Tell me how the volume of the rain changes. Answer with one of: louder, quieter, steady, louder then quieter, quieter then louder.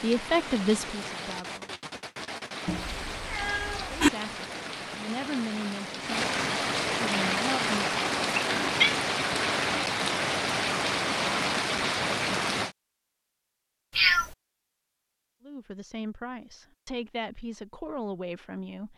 louder.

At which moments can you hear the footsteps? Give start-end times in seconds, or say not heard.
not heard.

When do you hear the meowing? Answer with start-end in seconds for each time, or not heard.
2.6-4.1, 8.3-8.9, 13.9-14.3.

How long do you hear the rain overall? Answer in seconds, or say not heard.
13 s.